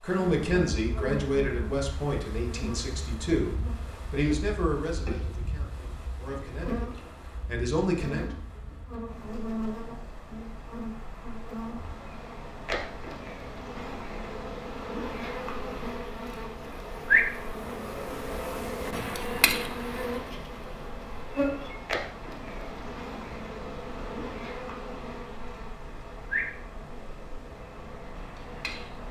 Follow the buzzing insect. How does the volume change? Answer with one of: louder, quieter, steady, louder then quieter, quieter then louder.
louder then quieter.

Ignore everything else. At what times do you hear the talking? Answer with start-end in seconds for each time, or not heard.
0.0-8.2.